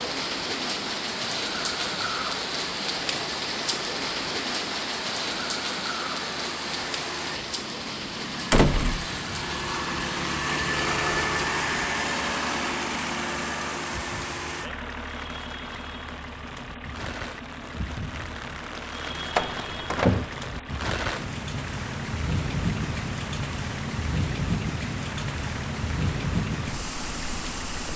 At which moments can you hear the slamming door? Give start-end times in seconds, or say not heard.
8.5-9.1, 19.4-20.4.